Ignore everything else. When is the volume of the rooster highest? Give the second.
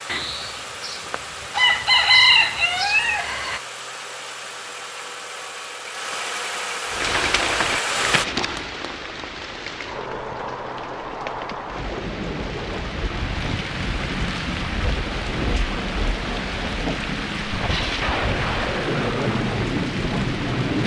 2 s.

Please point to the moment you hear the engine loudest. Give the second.
8 s.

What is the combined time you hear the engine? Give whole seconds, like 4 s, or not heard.
8 s.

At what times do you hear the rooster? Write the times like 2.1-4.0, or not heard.
0.1-3.6.